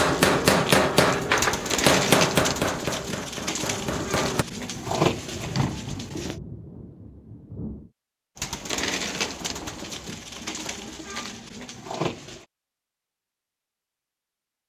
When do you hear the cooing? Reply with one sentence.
The cooing can be heard from 0.1 to 6.3 s and from 8.3 to 12.4 s.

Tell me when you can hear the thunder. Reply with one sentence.
The thunder can be heard from 3.6 to 7.9 s.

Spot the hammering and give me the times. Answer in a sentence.
The hammering can be heard from 0.0 to 4.5 s.